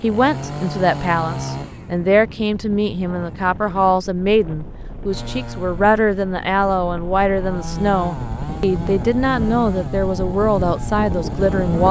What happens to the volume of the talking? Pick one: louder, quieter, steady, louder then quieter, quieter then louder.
steady.